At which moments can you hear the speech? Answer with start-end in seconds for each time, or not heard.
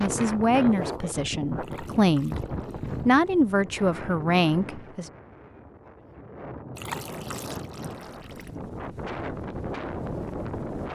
0.0-2.4, 3.0-5.0.